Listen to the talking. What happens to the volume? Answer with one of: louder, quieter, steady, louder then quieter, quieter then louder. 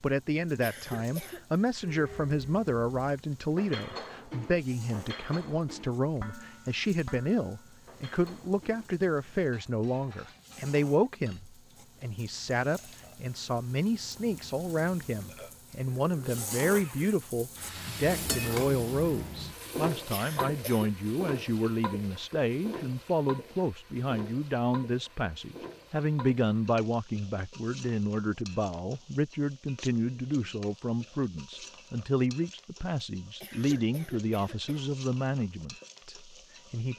steady.